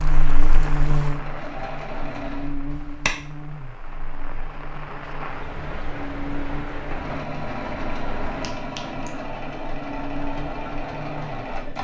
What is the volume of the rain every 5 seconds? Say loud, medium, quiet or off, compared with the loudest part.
loud, loud, off.